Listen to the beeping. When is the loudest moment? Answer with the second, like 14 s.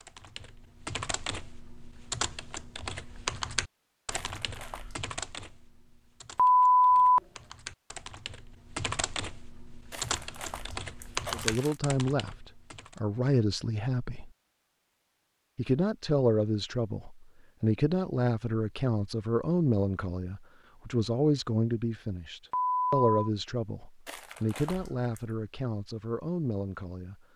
7 s.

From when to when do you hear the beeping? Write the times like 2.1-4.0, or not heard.
6.3-7.2, 22.5-23.1.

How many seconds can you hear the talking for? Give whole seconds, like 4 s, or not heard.
15 s.